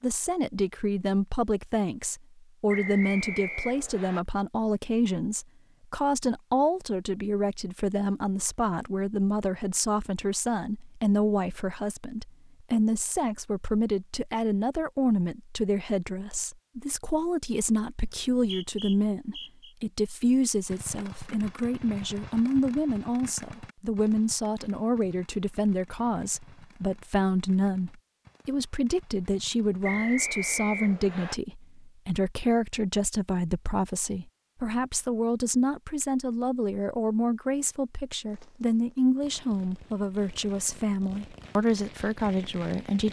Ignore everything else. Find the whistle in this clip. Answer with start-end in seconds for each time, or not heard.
2.6-4.2, 18.3-19.8, 29.8-31.4.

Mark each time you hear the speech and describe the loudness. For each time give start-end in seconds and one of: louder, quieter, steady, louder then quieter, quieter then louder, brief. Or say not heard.
0.0-43.0 steady.